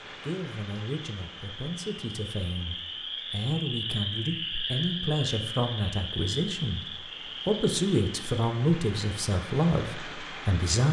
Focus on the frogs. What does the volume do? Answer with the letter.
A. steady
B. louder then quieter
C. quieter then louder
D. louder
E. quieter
B.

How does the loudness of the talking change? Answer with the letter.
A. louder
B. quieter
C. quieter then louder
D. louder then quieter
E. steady
A.